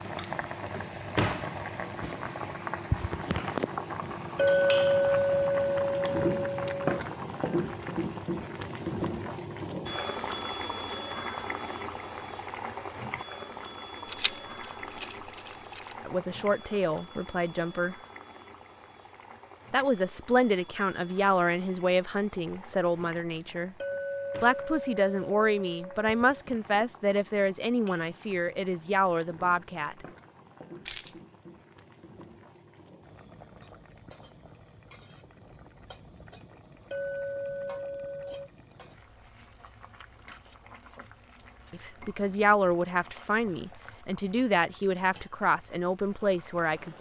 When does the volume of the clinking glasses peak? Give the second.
5 s.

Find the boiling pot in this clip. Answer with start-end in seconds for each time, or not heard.
0.0-46.9.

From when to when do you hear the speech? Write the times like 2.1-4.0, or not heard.
16.1-17.9, 19.7-23.8, 24.4-30.1, 41.7-46.9.